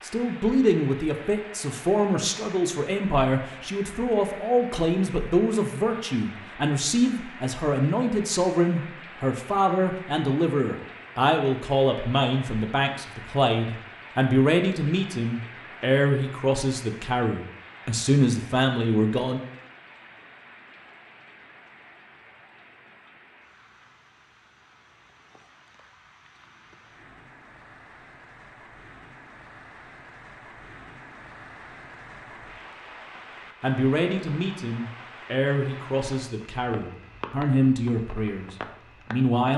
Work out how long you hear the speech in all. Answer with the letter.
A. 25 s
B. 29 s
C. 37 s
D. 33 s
A.